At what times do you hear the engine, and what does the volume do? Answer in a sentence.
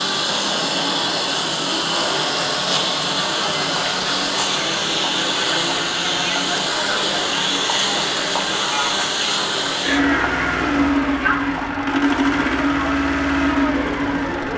The engine can be heard from 0.0 to 14.5 s, at a steady volume.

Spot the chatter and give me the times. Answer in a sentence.
You can hear the chatter from 0.0 to 14.5 s.